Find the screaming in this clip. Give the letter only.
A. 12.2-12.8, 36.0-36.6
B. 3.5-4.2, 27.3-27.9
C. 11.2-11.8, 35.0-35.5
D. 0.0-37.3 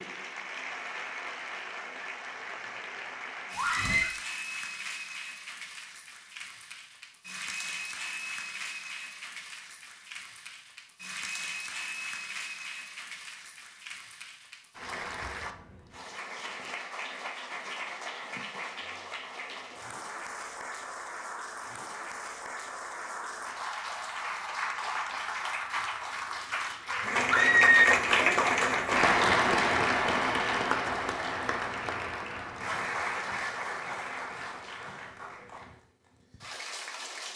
B.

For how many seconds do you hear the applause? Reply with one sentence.
The applause can be heard for 37 seconds in total.